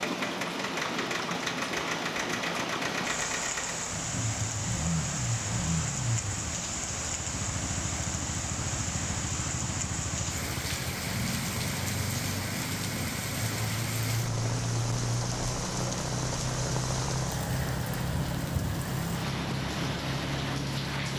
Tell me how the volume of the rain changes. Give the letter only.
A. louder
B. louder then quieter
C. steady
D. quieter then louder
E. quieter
C.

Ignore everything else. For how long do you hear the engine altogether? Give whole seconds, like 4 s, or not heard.
21 s.